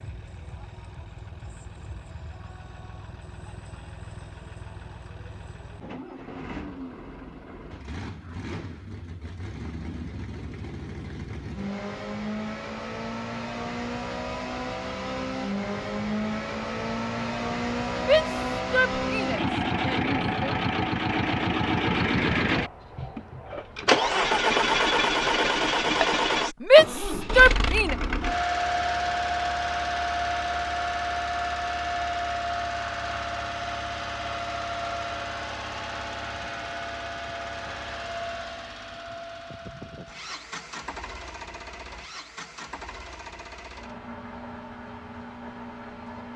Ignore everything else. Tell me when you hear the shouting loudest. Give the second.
27 s.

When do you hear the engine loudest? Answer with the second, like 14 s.
24 s.